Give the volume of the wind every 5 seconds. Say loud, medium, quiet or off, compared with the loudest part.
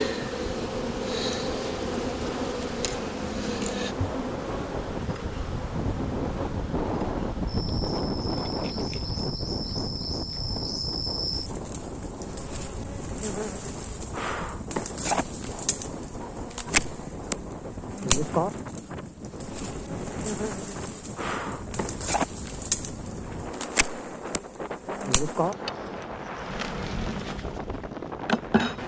medium, loud, medium, medium, medium, medium.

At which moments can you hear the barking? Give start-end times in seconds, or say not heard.
not heard.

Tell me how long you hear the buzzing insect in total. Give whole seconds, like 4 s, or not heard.
29 s.